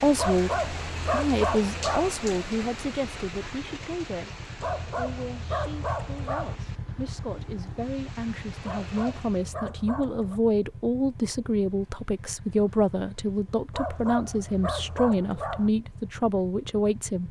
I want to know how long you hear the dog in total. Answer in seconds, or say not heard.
8 s.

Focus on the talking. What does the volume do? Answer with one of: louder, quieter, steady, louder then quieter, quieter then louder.
quieter then louder.